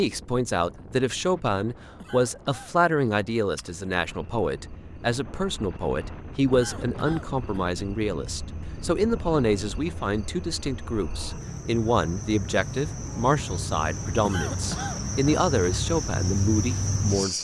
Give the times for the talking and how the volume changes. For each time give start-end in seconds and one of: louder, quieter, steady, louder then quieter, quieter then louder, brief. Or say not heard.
0.0-17.3 steady.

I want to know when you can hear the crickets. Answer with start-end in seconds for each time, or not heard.
3.4-17.3.